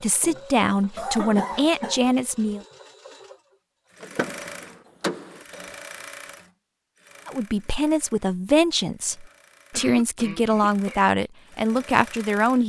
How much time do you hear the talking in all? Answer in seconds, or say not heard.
8 s.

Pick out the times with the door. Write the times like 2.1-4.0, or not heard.
4.0-5.5.